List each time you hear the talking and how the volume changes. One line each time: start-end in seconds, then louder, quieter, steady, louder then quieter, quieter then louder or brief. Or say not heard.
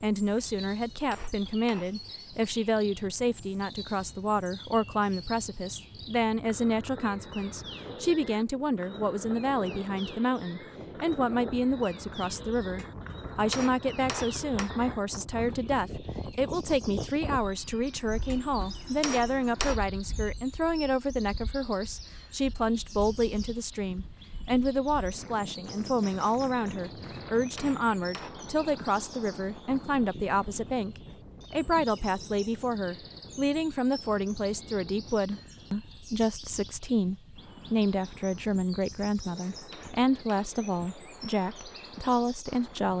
0.0-42.9 steady.